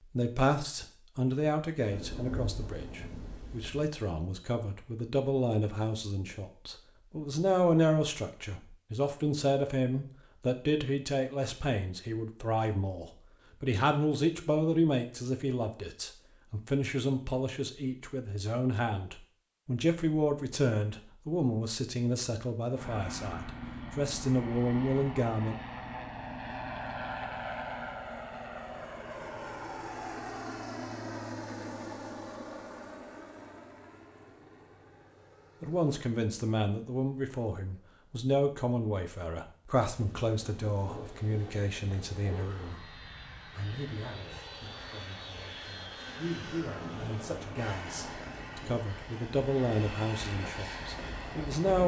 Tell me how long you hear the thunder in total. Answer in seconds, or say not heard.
5 s.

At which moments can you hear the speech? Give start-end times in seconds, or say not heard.
0.1-25.6, 35.6-51.8.